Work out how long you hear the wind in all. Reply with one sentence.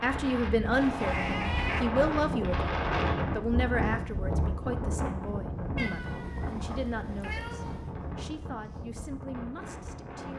The wind can be heard for 10 seconds in total.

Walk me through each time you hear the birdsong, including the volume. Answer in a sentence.
You can't hear the birdsong here.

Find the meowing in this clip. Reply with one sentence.
You can hear the meowing from 0.7 to 1.9 s and from 5.8 to 7.9 s.